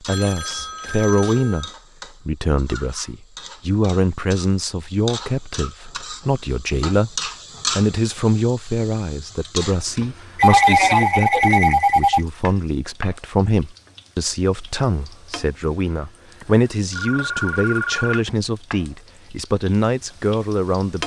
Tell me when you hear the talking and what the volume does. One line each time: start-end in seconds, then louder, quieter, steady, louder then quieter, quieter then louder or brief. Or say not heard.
0.1-21.0 steady.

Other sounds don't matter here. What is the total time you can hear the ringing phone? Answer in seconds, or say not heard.
5 s.